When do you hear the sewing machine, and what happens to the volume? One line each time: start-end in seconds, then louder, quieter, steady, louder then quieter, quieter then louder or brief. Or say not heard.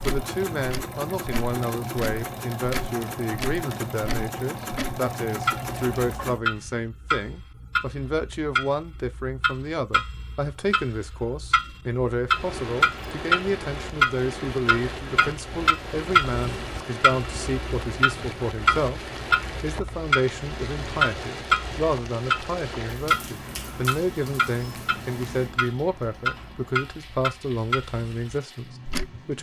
0.0-6.4 steady.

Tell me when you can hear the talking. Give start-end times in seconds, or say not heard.
0.0-19.0, 19.6-29.3.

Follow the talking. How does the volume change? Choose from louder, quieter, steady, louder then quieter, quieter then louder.
steady.